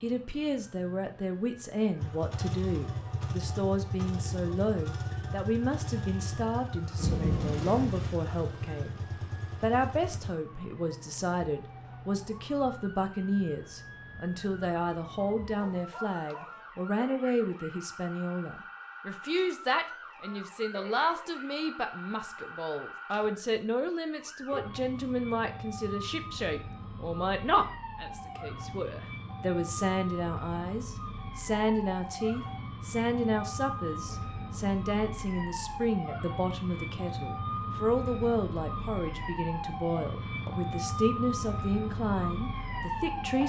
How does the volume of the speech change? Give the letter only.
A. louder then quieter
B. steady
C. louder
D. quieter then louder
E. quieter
B.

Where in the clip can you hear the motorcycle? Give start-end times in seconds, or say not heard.
1.9-10.3.